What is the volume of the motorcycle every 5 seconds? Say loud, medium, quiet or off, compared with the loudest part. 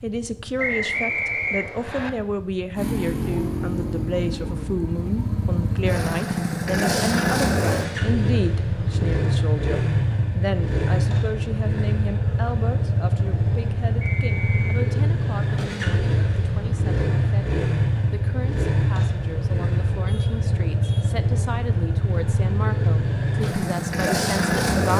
quiet, loud, loud, loud, loud.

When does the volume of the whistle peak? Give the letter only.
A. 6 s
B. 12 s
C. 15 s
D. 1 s
D.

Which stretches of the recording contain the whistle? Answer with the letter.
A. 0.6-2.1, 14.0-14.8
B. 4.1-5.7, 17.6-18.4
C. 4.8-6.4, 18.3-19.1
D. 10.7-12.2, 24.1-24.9
A.